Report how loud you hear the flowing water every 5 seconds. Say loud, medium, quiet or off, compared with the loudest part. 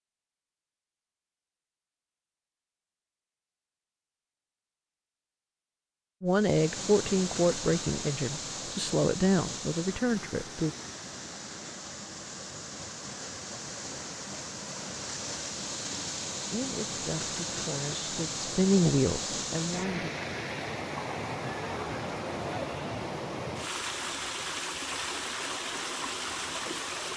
off, loud, medium, loud, loud, loud.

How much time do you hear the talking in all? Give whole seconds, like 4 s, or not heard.
8 s.